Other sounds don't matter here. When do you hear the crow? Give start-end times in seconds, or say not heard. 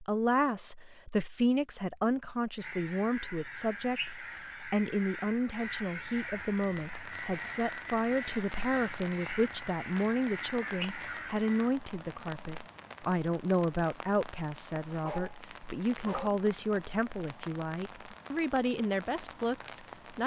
2.5-11.8.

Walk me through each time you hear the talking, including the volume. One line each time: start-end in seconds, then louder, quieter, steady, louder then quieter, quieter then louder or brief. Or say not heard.
0.0-20.2 steady.